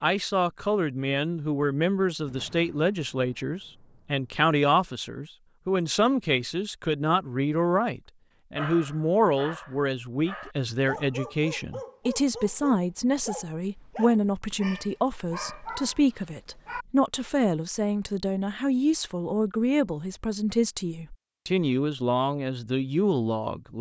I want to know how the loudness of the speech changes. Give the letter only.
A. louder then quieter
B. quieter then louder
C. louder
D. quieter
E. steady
E.